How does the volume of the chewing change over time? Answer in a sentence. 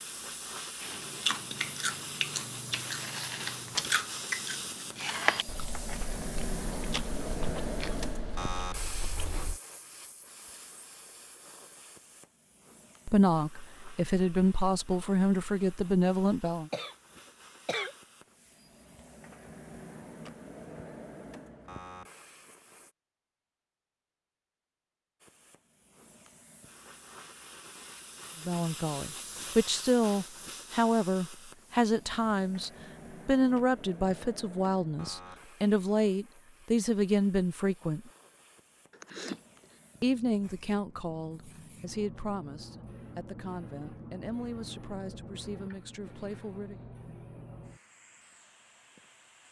The loudness of the chewing goes down.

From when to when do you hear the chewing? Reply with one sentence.
You can hear the chewing from 0.8 to 9.6 s.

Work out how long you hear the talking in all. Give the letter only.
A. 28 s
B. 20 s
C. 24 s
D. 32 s
B.